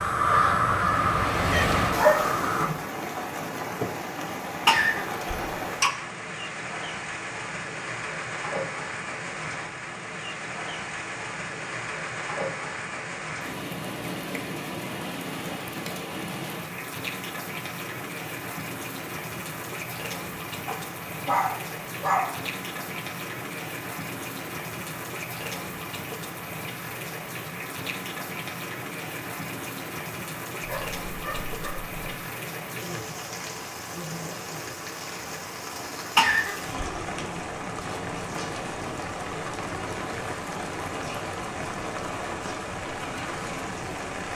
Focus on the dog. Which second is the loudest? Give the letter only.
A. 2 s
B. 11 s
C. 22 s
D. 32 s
A.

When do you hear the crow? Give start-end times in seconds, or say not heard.
0.0-2.7.